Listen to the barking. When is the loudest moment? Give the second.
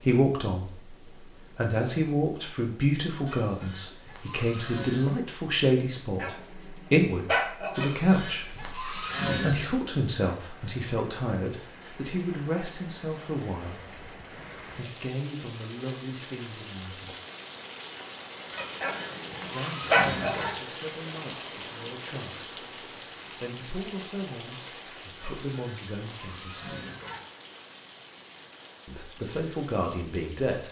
20 s.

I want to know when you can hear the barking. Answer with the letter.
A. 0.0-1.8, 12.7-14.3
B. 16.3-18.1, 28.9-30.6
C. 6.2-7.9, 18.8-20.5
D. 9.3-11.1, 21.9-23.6
C.